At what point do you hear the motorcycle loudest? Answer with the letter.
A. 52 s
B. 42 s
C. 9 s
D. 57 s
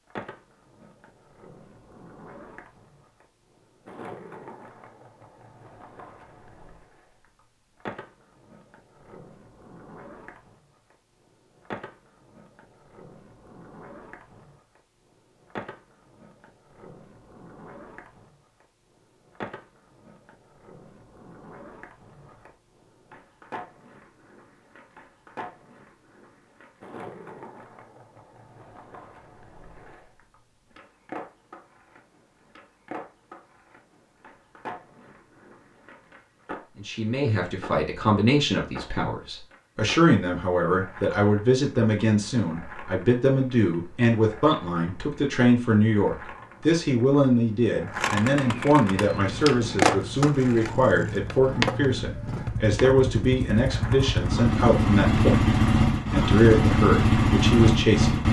D.